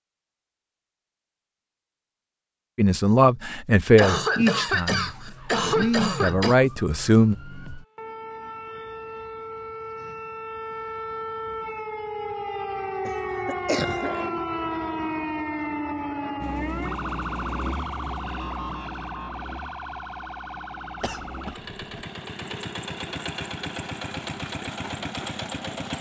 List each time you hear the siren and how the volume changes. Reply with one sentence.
The siren can be heard from 5.0 to 21.6 s, getting louder then quieter.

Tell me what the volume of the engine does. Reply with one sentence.
The volume of the engine goes down, then up.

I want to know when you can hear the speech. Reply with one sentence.
You can hear the speech from 2.8 to 5.2 s and from 5.8 to 7.3 s.